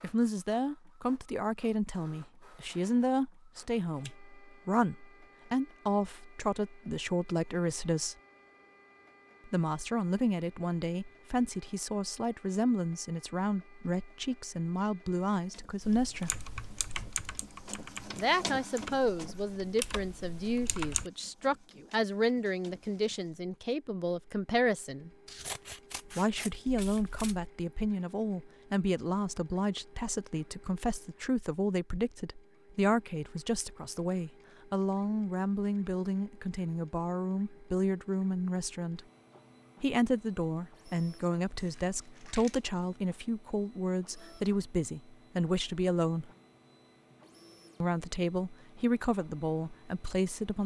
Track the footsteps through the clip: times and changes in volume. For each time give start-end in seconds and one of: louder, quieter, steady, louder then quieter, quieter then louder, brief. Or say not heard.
not heard.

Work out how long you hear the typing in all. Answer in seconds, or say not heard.
5 s.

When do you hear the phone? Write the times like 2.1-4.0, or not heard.
not heard.